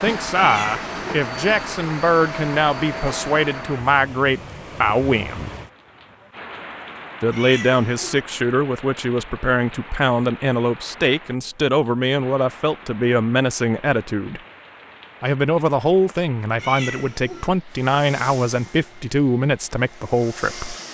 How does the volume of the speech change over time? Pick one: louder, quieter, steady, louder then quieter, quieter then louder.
steady.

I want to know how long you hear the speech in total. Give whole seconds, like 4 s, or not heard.
18 s.